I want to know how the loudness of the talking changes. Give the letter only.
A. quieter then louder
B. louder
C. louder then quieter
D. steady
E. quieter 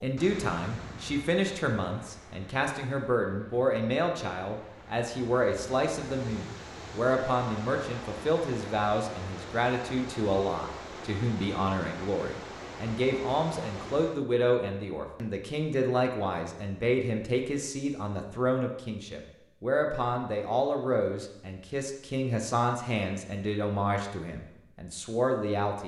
D.